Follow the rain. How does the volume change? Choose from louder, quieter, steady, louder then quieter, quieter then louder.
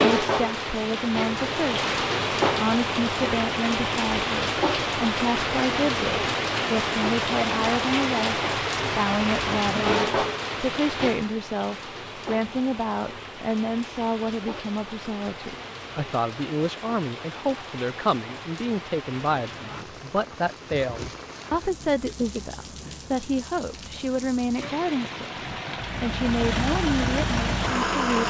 quieter.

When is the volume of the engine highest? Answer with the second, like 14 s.
28 s.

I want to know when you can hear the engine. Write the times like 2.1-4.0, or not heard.
24.6-28.2.